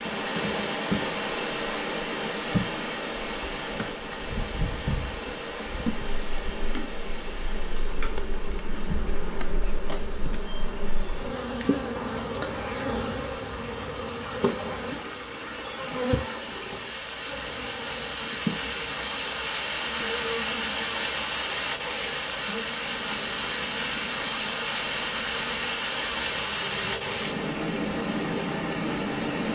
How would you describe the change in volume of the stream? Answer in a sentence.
The volume of the stream goes down, then up.